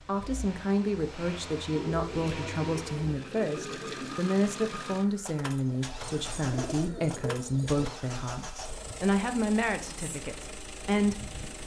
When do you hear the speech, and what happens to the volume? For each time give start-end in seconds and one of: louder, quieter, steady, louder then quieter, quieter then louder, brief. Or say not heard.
0.1-11.3 steady.